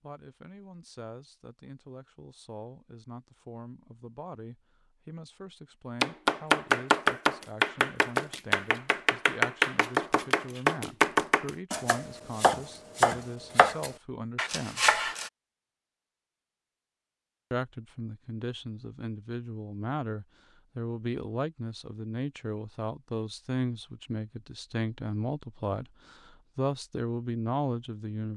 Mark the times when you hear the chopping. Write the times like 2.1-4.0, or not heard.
6.0-15.3.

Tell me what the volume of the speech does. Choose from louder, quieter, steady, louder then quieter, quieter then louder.
louder.